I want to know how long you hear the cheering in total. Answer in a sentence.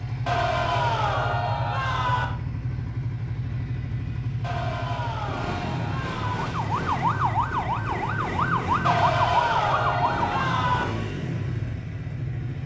You can hear the cheering for 6 seconds altogether.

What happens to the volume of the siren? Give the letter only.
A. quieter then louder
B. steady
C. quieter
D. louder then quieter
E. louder
B.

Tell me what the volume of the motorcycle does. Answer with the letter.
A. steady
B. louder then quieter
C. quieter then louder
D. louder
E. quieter
A.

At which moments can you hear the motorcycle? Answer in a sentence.
You can hear the motorcycle from 0.0 to 12.6 s.